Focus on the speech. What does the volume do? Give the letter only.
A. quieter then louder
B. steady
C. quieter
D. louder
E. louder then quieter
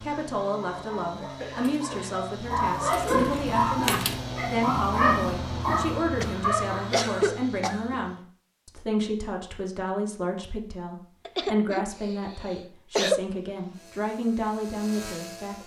B.